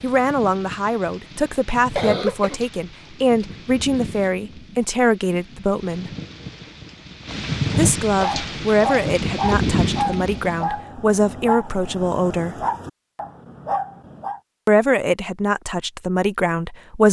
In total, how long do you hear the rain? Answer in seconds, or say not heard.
11 s.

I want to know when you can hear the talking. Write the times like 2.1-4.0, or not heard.
0.0-6.1, 7.8-12.7, 14.7-17.0.